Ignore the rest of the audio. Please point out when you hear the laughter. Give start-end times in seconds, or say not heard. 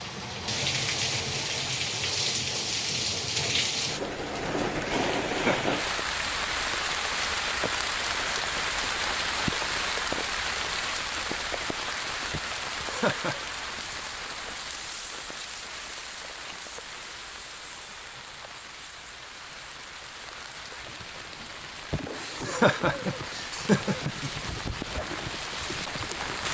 4.8-6.0, 12.3-13.4, 21.9-24.4.